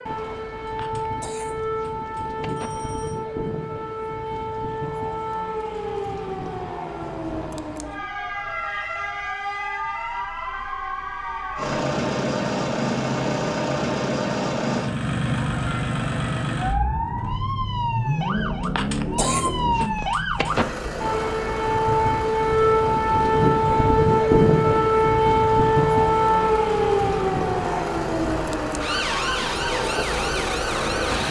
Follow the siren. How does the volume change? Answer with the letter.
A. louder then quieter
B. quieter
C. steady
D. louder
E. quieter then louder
D.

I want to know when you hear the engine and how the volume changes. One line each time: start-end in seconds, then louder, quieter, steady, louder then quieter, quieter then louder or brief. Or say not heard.
11.6-31.2 quieter then louder.